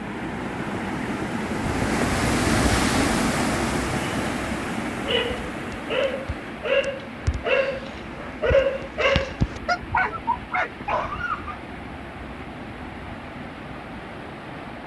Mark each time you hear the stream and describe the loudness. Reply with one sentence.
You can hear the stream from 0.0 to 14.8 s, getting quieter.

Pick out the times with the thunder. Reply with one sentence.
The thunder can't be heard in this clip.